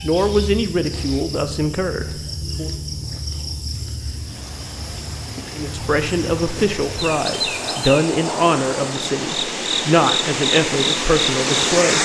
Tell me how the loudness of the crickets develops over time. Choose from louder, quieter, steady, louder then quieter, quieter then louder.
louder.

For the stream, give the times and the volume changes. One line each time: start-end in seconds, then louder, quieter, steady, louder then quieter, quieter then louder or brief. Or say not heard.
4.2-12.0 louder.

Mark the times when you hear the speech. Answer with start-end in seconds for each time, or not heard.
0.0-2.7, 5.5-12.0.